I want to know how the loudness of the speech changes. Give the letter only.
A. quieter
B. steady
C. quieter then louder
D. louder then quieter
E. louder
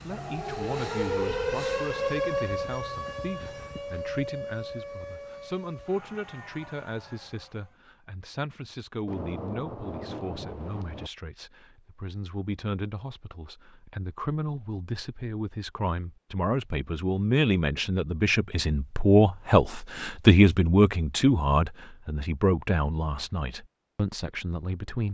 E.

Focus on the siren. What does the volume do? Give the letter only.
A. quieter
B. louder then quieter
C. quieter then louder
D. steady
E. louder
A.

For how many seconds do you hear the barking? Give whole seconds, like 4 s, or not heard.
not heard.